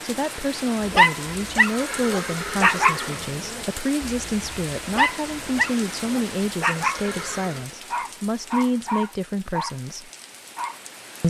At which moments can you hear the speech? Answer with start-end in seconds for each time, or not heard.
0.0-10.1.